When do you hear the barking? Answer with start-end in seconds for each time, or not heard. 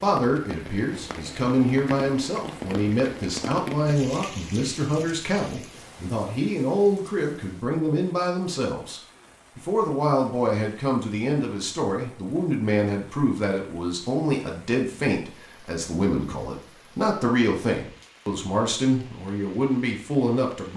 not heard.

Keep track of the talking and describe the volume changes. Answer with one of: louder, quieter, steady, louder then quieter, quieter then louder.
steady.